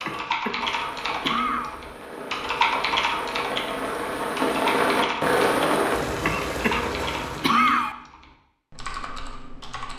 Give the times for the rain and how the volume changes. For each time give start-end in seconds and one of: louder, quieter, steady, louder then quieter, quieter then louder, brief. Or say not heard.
0.0-7.8 louder then quieter.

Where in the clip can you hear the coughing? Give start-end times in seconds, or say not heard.
0.1-1.8, 6.2-8.0.